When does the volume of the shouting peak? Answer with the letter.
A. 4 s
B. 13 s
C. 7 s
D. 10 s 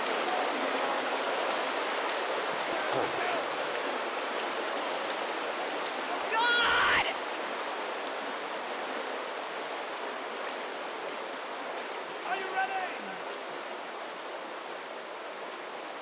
C.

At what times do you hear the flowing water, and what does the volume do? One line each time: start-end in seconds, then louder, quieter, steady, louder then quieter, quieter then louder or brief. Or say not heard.
0.0-15.9 quieter.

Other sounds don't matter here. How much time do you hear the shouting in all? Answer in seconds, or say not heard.
3 s.